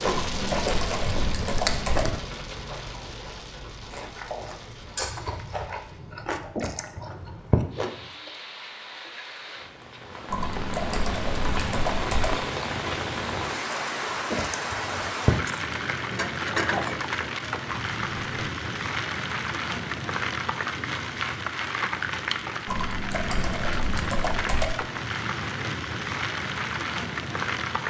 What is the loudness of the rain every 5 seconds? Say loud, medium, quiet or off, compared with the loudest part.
medium, quiet, loud, loud, loud, loud.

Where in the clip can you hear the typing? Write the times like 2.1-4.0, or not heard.
0.1-2.0, 10.3-12.3, 22.6-24.7.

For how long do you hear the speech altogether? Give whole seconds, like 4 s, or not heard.
not heard.